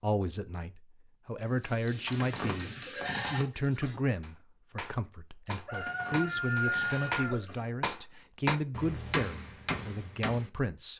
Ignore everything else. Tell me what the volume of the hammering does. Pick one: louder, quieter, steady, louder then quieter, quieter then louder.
louder.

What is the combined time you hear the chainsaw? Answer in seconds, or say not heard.
not heard.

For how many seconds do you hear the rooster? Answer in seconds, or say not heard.
2 s.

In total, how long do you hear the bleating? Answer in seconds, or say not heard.
4 s.